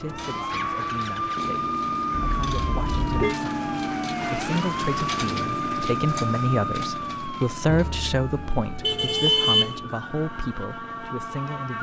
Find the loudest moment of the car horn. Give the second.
9 s.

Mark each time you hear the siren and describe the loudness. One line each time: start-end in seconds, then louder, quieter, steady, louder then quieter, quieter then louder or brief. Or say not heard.
0.0-11.7 quieter.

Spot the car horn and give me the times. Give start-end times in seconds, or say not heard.
2.1-3.4, 8.8-9.8.